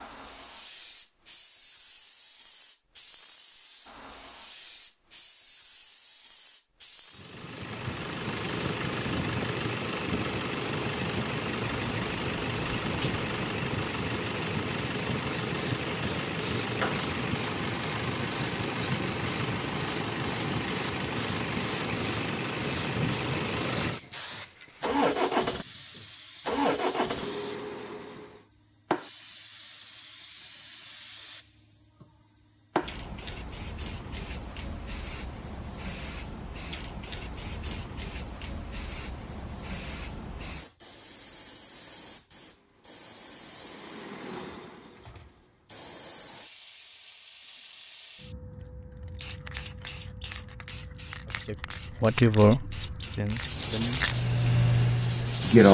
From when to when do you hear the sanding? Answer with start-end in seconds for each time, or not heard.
53.4-55.6.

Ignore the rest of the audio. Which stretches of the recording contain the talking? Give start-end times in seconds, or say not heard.
51.2-54.0.